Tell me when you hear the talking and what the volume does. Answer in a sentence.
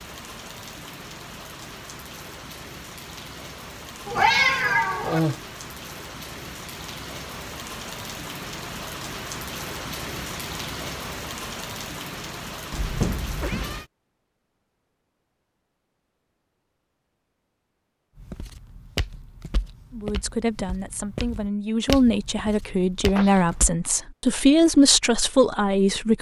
The talking can be heard from 19.9 to 26.1 s, getting louder.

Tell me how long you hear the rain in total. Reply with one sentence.
You can hear the rain for 14 seconds altogether.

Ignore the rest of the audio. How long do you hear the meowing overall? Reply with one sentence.
The meowing can be heard for 3 seconds in total.